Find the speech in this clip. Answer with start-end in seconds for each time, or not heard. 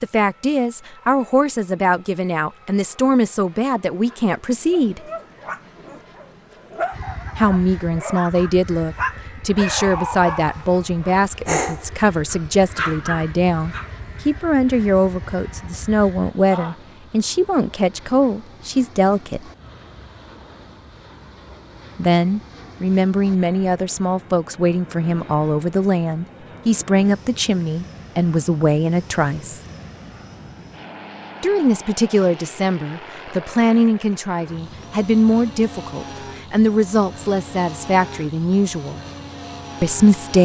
0.0-5.0, 7.3-19.4, 21.9-29.6, 31.4-39.0, 39.8-40.3.